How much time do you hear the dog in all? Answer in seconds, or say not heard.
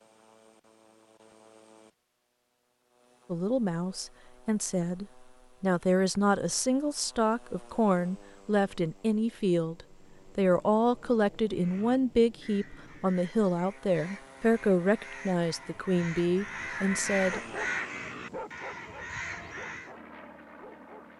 4 s.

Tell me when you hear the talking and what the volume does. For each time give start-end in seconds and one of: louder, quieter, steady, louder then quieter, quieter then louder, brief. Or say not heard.
3.3-17.4 steady.